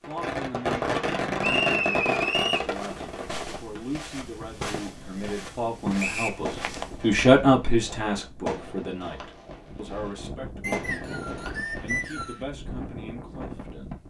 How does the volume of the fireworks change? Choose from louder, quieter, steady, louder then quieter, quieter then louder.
quieter.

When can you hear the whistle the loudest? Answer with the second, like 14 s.
2 s.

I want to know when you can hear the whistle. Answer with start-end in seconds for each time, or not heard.
1.4-2.7, 6.0-6.4, 10.6-12.4.